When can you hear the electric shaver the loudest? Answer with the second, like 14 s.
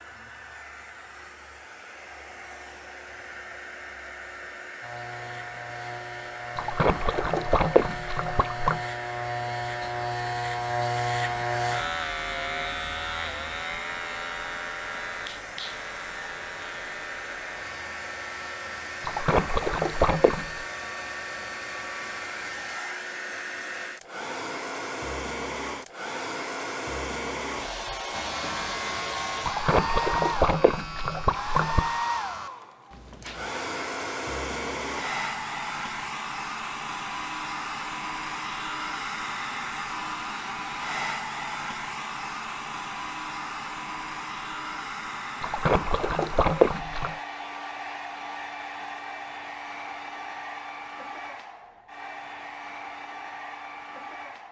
11 s.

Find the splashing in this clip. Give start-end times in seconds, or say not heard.
6.5-8.8, 19.0-20.6, 29.4-31.9, 45.4-47.1.